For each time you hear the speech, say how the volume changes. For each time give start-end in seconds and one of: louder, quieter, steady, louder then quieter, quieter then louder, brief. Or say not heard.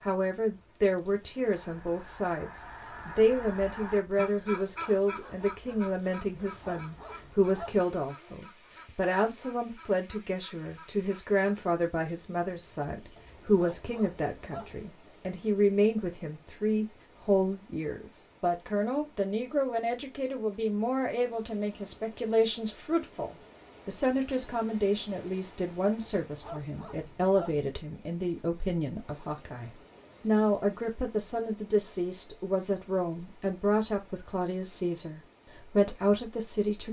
0.0-36.8 steady.